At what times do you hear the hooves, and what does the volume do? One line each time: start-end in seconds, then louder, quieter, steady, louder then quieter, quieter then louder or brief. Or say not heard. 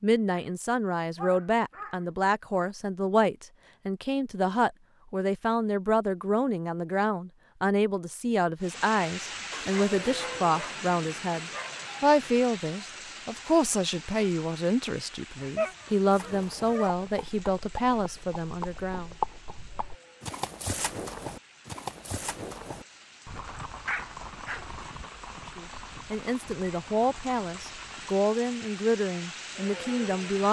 16.1-28.1 louder then quieter.